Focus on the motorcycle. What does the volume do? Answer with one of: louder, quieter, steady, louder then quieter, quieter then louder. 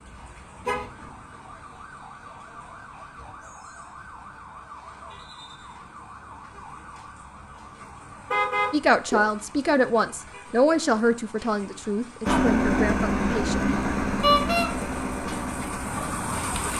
quieter.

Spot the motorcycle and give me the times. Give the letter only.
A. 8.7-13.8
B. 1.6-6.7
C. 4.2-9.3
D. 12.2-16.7
D.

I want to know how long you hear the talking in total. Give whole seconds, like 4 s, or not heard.
5 s.